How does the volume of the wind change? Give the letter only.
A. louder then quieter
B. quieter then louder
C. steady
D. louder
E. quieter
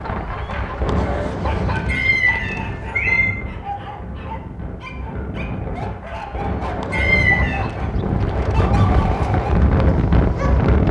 B.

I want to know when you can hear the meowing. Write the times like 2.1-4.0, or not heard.
1.9-3.4, 6.9-7.6.